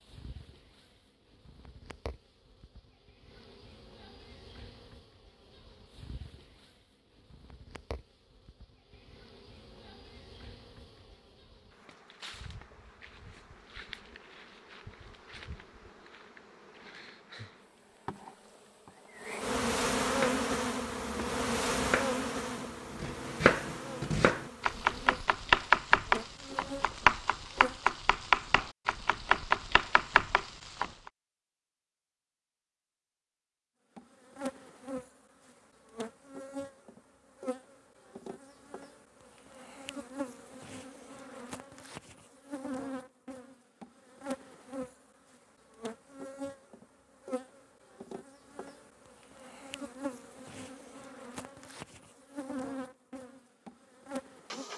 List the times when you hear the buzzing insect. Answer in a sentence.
You can hear the buzzing insect from 0.0 to 27.9 s and from 34.0 to 54.7 s.